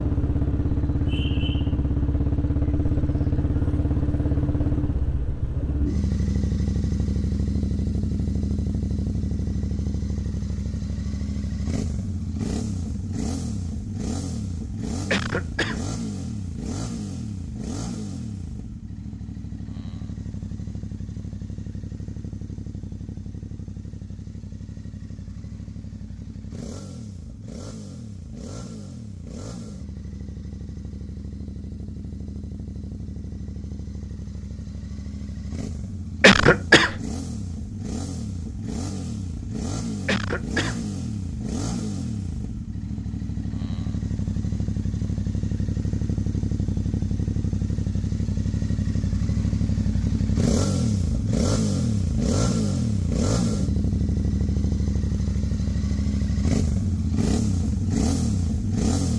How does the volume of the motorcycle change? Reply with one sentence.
The volume of the motorcycle goes down, then up.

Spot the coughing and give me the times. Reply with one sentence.
The coughing can be heard from 15.1 to 15.8 s, from 36.2 to 37.0 s and from 40.0 to 40.8 s.